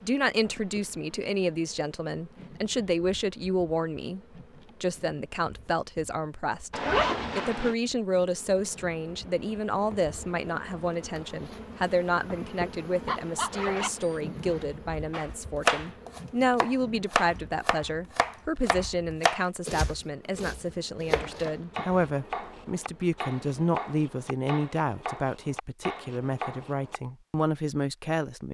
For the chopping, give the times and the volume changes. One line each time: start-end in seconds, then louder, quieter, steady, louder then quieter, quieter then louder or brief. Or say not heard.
15.1-27.0 quieter.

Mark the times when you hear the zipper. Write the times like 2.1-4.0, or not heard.
6.7-7.8, 13.3-14.7, 21.1-22.1.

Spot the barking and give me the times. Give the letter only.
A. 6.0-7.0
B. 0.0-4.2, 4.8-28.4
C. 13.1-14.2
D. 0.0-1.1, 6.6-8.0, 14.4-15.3
C.